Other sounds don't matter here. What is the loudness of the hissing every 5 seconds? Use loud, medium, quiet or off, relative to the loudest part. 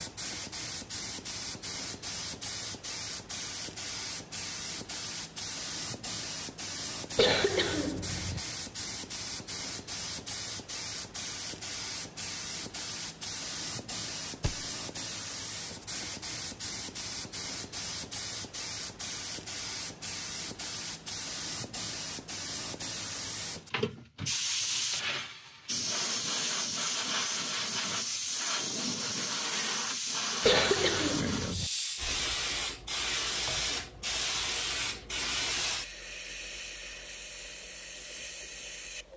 medium, medium, medium, medium, loud, loud, loud, medium.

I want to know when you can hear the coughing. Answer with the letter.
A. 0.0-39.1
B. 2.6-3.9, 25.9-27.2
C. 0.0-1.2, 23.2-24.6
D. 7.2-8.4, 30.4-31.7
D.